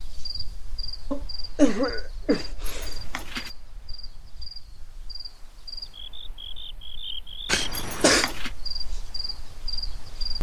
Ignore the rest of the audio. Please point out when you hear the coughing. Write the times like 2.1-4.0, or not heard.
1.1-2.9, 7.5-8.2.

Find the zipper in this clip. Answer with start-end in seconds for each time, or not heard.
2.6-3.5, 7.7-8.5.